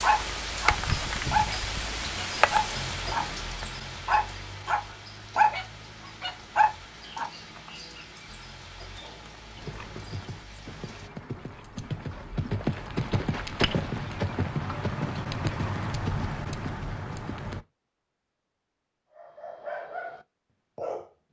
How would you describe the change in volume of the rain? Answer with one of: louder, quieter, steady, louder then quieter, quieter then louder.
quieter.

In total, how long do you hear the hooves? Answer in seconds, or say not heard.
8 s.